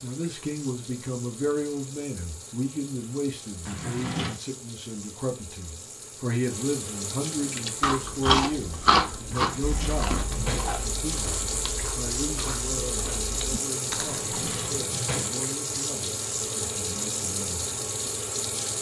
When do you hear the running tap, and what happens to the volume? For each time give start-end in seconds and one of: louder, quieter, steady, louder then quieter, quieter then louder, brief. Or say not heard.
0.0-18.7 louder.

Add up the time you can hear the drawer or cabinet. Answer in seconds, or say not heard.
4 s.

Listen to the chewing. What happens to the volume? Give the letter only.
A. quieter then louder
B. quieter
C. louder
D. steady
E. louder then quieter
B.